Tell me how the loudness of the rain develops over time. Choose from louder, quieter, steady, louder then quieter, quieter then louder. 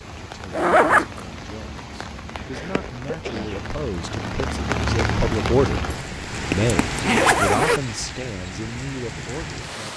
louder then quieter.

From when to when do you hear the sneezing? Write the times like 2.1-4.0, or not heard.
2.4-3.7.